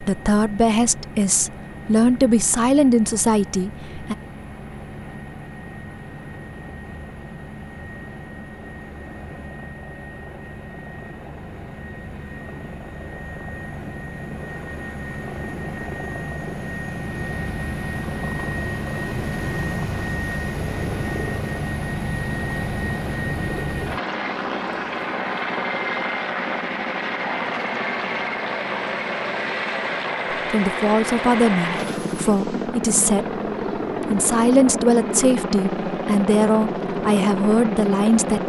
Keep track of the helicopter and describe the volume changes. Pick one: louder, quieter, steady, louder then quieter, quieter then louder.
louder.